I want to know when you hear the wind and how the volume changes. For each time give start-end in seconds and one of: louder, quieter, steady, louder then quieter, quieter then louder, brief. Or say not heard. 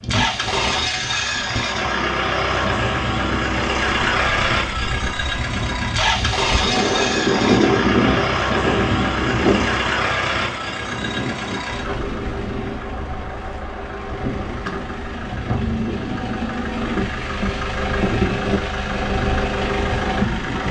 0.0-20.6 louder then quieter.